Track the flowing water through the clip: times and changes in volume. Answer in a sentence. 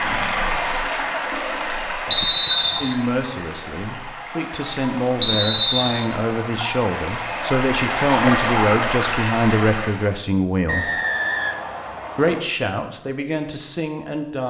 The flowing water can be heard from 0.0 to 10.2 s, getting quieter then louder.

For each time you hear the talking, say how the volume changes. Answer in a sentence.
You can hear the talking from 2.8 to 10.9 s, getting louder; and briefly from 12.2 to 14.4 s.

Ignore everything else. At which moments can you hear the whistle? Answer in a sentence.
The whistle can be heard from 2.1 to 3.0 s, from 5.2 to 6.0 s and from 10.7 to 12.4 s.